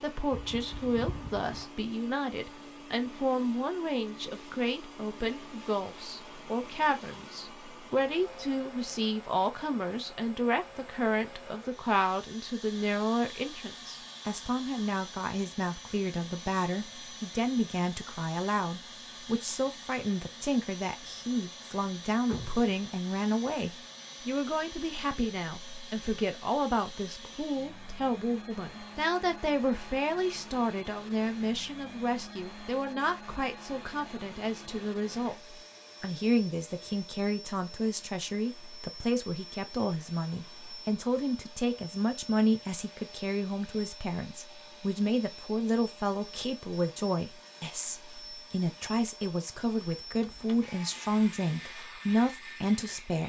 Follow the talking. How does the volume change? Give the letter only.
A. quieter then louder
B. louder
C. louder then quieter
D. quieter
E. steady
E.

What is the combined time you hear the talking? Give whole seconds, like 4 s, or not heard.
53 s.